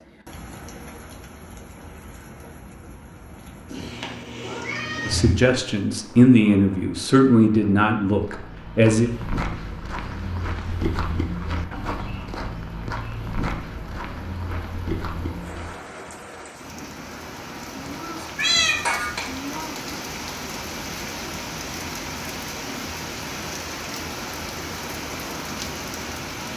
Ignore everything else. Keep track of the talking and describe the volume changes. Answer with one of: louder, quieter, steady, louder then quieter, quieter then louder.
louder then quieter.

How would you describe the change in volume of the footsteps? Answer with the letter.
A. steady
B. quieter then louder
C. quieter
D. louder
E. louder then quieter
A.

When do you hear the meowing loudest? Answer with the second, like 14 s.
19 s.